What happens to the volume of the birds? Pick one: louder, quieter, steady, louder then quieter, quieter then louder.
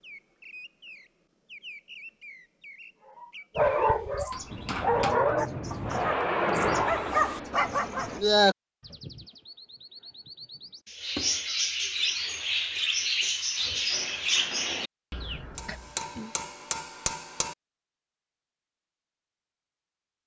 louder.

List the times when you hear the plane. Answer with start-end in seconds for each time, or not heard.
4.5-8.2.